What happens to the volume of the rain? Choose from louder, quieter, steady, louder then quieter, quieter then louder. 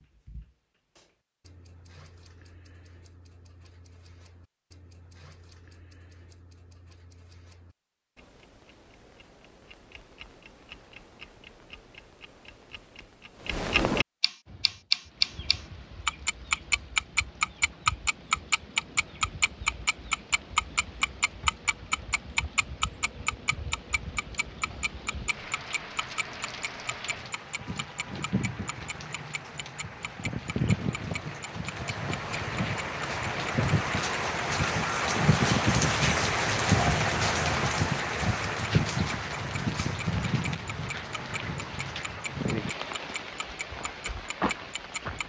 louder then quieter.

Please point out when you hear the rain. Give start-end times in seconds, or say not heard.
14.4-45.2.